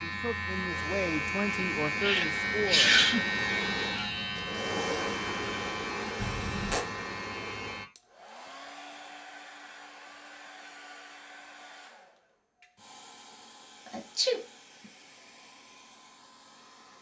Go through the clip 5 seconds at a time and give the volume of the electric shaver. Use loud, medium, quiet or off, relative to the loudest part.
loud, medium, off, off.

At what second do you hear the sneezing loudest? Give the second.
3 s.